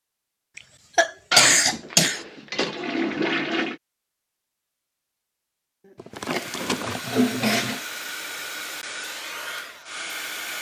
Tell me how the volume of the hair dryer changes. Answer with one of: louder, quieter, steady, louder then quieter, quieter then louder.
steady.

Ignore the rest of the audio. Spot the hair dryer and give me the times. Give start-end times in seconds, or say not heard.
6.2-10.5.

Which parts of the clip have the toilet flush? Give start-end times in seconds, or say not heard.
1.3-3.8, 6.0-7.8.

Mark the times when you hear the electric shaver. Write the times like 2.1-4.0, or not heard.
not heard.